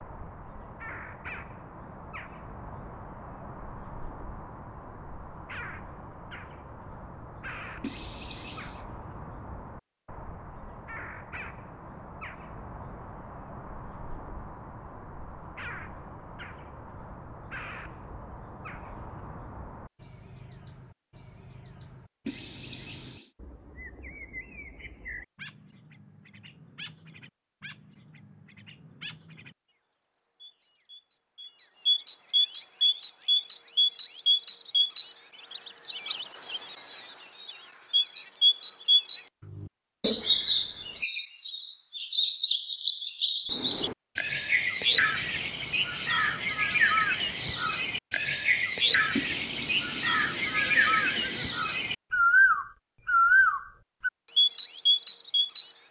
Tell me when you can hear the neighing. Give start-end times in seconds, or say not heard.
7.8-8.8, 22.2-23.4, 49.1-51.6.